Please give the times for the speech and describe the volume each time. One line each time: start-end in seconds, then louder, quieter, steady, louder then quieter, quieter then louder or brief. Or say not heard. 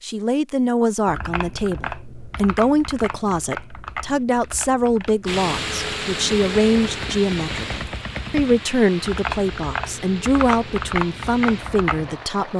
0.0-12.5 steady.